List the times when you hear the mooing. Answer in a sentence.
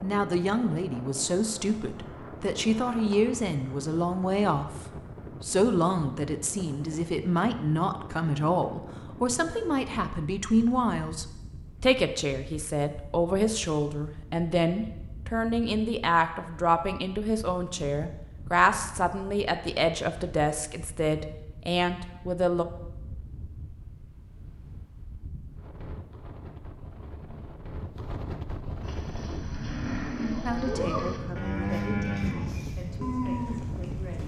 You can hear the mooing from 28.8 to 34.2 s.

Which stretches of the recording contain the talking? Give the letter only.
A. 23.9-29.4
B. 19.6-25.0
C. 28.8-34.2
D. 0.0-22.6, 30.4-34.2
D.